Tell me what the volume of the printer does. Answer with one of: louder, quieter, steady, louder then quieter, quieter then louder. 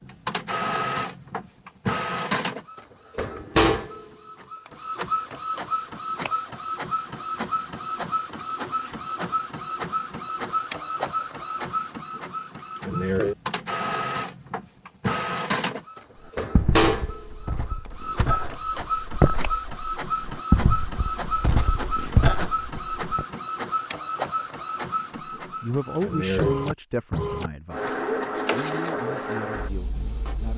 steady.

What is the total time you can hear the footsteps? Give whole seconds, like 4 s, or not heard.
7 s.